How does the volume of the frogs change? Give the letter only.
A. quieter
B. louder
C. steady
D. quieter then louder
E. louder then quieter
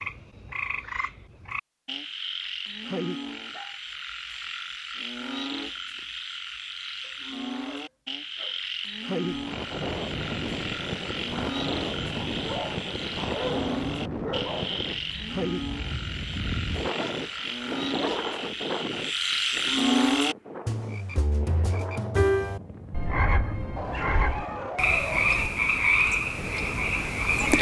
B.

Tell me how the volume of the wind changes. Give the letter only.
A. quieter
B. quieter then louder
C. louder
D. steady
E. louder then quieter
A.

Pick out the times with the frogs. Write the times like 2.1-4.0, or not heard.
0.0-27.5.